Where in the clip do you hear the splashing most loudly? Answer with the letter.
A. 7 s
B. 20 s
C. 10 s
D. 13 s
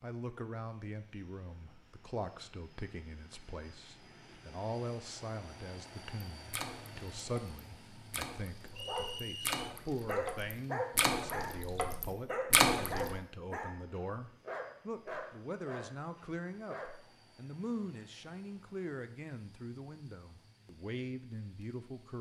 D.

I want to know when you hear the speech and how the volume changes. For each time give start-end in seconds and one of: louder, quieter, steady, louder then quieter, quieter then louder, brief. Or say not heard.
0.0-22.1 steady.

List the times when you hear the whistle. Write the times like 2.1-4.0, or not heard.
8.8-9.6.